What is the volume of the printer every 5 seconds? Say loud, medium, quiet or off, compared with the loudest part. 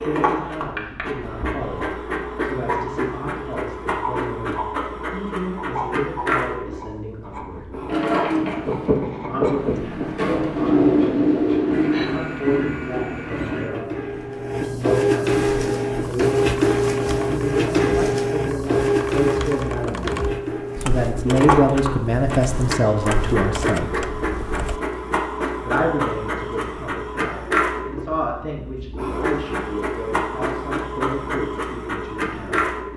medium, medium, medium, loud, medium, medium, medium.